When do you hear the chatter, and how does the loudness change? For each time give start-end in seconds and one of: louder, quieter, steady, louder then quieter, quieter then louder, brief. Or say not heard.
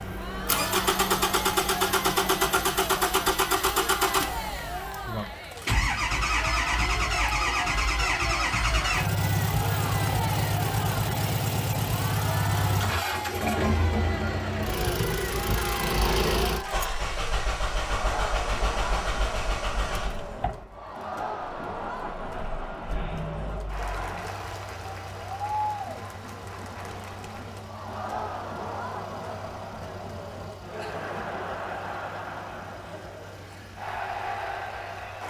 0.0-35.2 steady.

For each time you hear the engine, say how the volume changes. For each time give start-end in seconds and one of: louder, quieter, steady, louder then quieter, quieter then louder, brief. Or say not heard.
0.0-35.2 quieter.